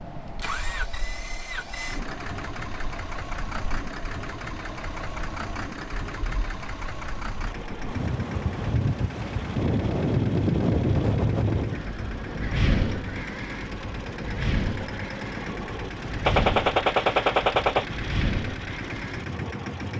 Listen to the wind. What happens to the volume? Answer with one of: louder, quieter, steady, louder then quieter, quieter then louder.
louder then quieter.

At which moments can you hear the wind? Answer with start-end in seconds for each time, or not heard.
0.0-19.9.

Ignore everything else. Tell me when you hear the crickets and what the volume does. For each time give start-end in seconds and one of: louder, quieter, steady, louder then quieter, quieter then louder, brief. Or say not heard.
not heard.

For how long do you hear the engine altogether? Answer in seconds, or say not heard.
20 s.